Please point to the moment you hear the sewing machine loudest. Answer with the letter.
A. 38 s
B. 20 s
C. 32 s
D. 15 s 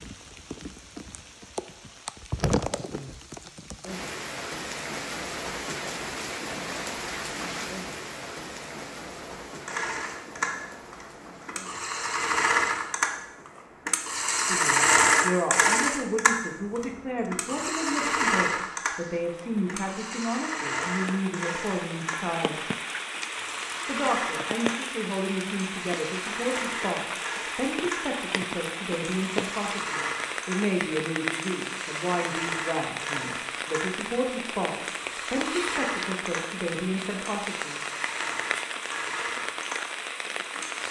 D.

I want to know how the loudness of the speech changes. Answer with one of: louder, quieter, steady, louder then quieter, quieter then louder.
steady.